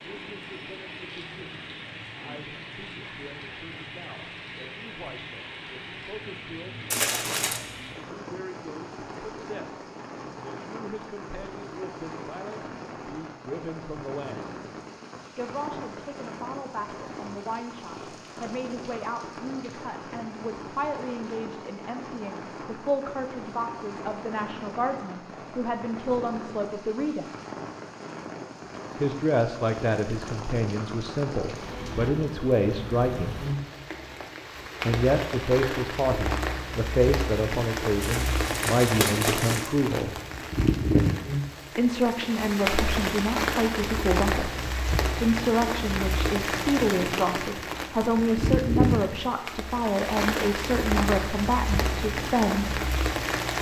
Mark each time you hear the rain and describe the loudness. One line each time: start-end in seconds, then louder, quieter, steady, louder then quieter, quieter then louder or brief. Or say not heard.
0.0-53.5 louder.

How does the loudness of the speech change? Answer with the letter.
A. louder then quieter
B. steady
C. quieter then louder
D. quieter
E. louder
E.